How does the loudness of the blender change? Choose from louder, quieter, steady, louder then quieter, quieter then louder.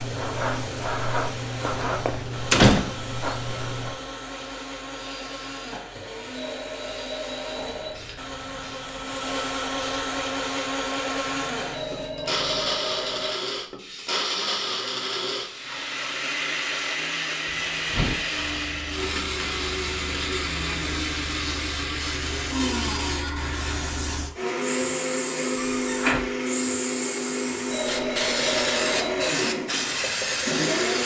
louder.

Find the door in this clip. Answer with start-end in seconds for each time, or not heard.
1.7-2.9, 17.7-18.2, 25.6-26.2.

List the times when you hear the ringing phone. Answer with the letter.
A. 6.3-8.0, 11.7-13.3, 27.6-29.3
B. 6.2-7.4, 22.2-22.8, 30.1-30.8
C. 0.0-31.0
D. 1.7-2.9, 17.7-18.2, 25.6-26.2
A.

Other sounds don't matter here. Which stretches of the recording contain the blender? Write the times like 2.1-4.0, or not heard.
0.0-31.0.